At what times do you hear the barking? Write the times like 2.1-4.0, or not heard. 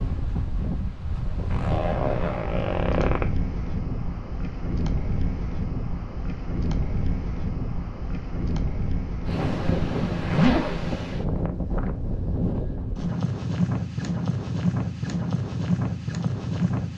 not heard.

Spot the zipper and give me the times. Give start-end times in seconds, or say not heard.
1.5-3.2, 9.3-10.9.